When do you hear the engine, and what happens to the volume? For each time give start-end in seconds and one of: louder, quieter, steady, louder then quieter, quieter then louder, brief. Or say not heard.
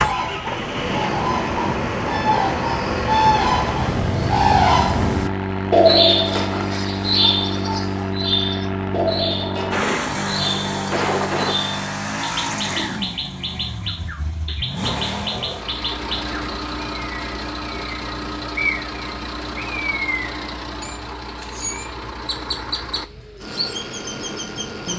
0.0-24.9 quieter.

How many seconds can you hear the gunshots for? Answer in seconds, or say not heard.
2 s.